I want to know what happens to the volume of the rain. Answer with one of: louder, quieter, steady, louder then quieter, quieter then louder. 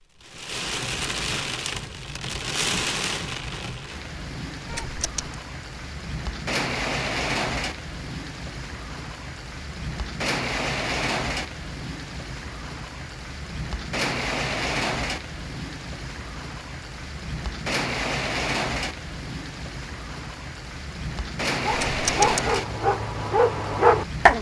steady.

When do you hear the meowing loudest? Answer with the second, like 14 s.
22 s.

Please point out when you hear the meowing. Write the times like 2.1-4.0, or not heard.
4.7-5.3, 21.7-22.4.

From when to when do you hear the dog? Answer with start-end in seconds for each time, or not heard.
21.6-24.3.